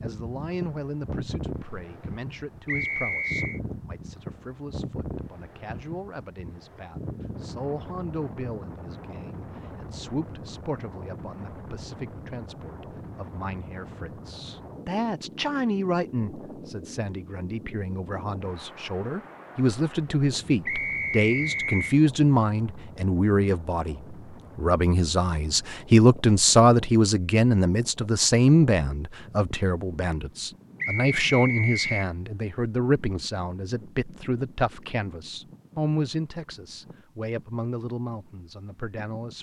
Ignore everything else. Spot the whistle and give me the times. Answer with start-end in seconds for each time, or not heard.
2.6-3.6, 20.6-21.9, 30.8-32.0.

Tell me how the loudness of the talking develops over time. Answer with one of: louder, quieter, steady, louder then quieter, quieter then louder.
louder then quieter.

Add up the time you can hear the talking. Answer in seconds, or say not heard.
39 s.